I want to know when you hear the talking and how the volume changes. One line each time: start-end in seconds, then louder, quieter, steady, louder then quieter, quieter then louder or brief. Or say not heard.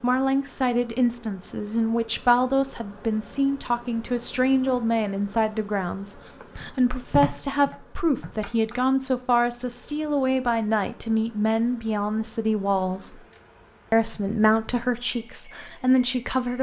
0.0-13.2 steady
13.9-16.5 brief.